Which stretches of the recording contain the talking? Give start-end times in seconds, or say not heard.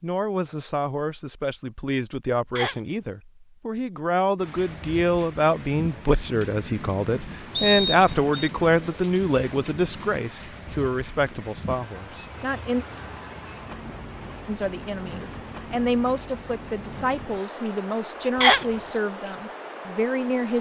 0.0-12.8, 14.4-20.5.